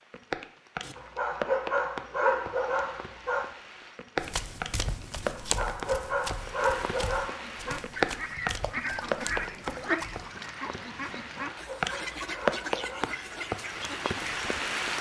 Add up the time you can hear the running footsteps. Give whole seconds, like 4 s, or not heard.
6 s.